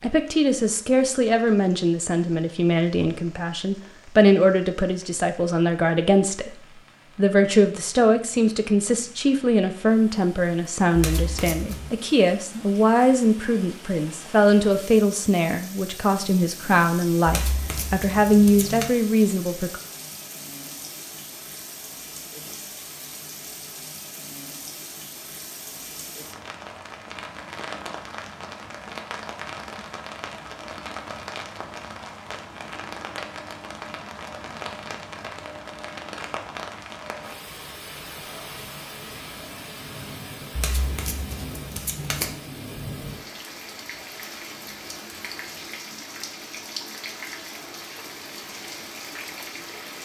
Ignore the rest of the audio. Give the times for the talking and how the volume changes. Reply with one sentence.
The talking can be heard from 0.0 to 19.8 s, at a steady volume.